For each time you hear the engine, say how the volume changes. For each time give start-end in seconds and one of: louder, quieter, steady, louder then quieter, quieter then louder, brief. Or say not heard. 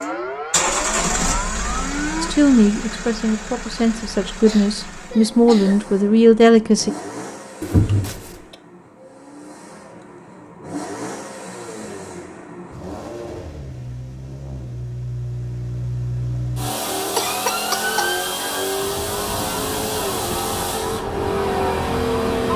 0.0-22.5 quieter then louder.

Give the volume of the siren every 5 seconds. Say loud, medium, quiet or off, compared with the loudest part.
loud, off, off, loud, loud.